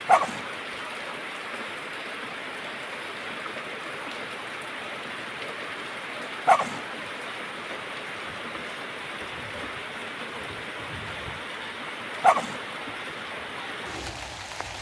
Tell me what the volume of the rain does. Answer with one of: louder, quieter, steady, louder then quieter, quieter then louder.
steady.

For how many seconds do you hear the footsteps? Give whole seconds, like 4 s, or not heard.
not heard.